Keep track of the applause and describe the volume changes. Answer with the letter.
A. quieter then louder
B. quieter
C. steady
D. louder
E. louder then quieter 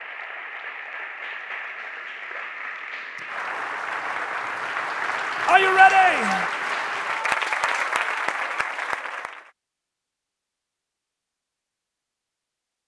D.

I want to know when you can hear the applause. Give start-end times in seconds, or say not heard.
0.0-9.5.